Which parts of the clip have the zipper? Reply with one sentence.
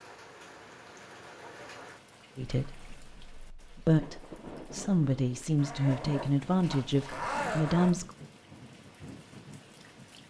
The zipper can be heard from 5.5 to 7.9 s.